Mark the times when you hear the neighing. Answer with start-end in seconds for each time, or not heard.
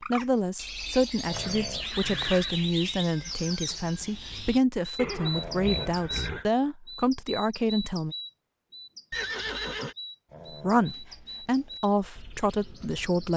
1.3-2.5, 5.0-6.5, 9.1-9.9.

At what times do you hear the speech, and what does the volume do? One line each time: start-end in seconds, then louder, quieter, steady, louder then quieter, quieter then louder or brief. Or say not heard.
0.1-8.2 steady
10.6-13.3 brief.